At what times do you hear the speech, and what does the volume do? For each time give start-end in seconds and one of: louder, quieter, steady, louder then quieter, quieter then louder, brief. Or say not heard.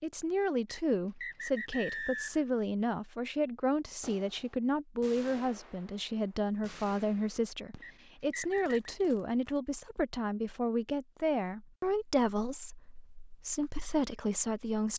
0.0-14.9 steady.